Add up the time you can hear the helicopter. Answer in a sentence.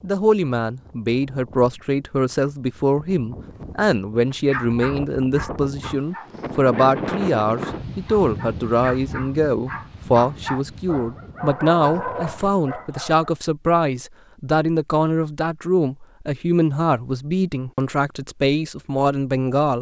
You can't hear the helicopter here.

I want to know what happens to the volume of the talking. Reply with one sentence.
The volume of the talking stays about the same.